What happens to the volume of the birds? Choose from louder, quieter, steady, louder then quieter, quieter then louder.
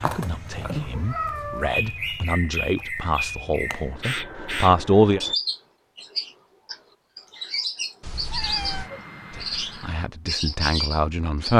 steady.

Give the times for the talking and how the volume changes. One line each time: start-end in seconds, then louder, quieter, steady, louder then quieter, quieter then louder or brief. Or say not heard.
0.0-5.2 louder
9.3-11.5 brief.